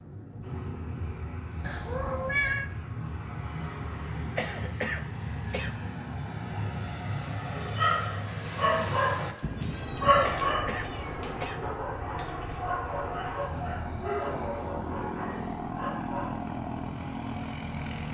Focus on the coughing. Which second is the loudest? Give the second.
5 s.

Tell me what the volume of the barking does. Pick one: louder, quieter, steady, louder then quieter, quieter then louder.
quieter.